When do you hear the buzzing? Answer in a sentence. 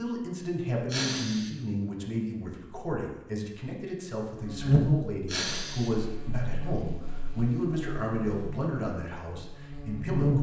You can hear the buzzing from 4.3 to 10.3 s.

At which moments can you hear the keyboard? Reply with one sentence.
You can't hear the keyboard here.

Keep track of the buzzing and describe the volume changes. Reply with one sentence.
The loudness of the buzzing goes down.